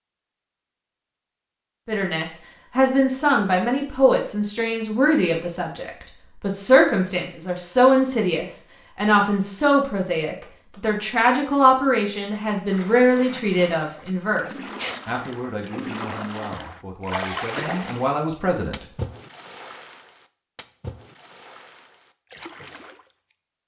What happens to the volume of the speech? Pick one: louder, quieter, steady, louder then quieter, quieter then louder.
quieter.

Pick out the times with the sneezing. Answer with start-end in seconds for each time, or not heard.
14.7-15.1.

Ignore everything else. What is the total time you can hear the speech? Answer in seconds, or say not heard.
17 s.